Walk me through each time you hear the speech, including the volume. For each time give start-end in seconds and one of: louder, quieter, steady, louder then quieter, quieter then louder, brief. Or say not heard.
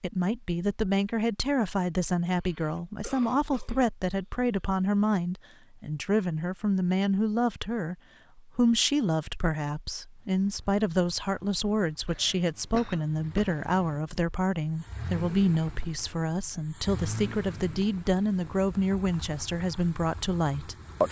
0.0-21.0 steady.